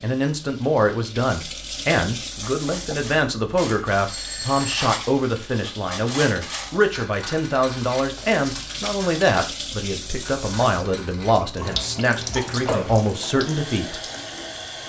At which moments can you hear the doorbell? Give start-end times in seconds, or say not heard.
4.0-4.8, 12.3-13.1.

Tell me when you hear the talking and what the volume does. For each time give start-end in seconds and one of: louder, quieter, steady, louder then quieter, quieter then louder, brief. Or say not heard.
0.0-14.0 steady.